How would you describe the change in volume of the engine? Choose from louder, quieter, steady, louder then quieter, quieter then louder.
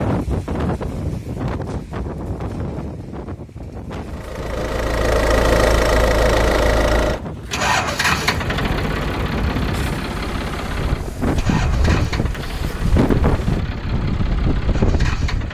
quieter.